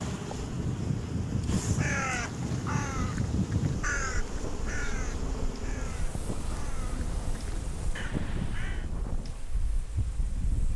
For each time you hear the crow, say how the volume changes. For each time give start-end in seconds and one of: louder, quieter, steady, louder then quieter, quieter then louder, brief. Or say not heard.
1.8-8.8 quieter then louder.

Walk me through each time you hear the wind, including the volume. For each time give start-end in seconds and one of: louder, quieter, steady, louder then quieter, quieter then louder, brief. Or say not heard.
0.0-10.7 quieter.